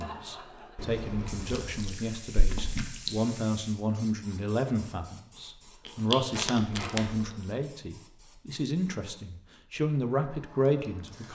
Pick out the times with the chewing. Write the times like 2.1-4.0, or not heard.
1.5-3.2, 5.8-7.3.